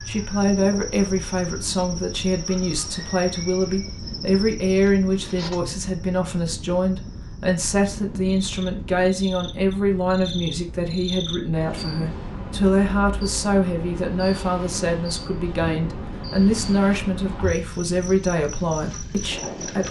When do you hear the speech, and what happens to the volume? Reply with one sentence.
The speech can be heard from 0.0 to 19.8 s, at a steady volume.